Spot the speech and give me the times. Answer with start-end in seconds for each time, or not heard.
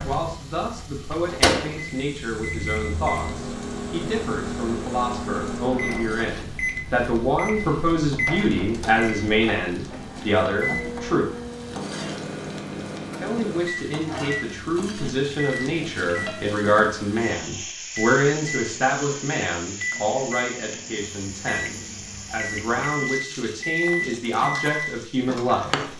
0.0-11.3, 13.2-25.7.